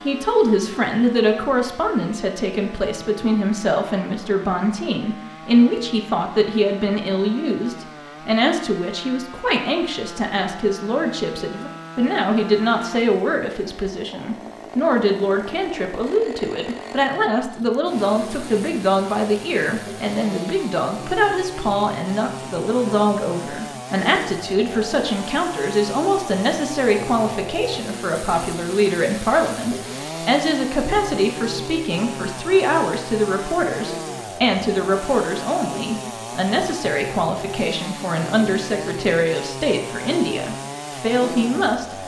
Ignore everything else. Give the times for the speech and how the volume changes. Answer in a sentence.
You can hear the speech from 0.0 to 42.0 s, at a steady volume.